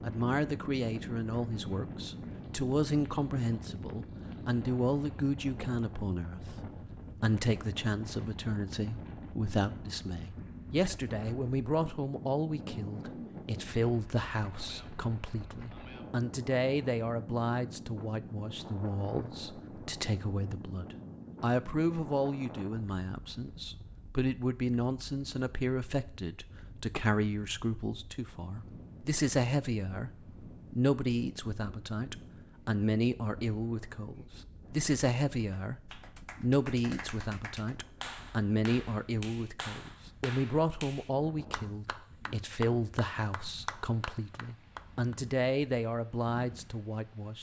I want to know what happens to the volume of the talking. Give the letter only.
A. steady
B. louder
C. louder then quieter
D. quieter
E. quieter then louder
A.